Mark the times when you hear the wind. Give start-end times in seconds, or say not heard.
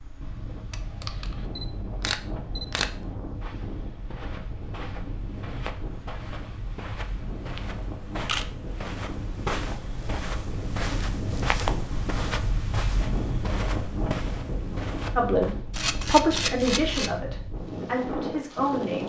0.0-19.0.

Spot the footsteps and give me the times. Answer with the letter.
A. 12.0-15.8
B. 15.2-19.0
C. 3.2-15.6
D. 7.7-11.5
C.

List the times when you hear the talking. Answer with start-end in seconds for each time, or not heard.
15.2-19.0.